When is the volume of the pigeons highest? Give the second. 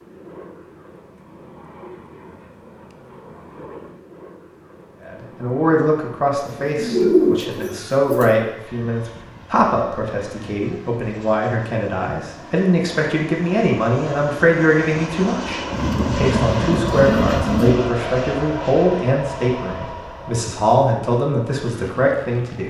7 s.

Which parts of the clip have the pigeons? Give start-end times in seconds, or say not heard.
6.3-8.3, 15.7-17.8.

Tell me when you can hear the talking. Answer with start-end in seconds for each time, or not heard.
5.0-22.6.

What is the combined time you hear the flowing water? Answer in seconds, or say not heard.
not heard.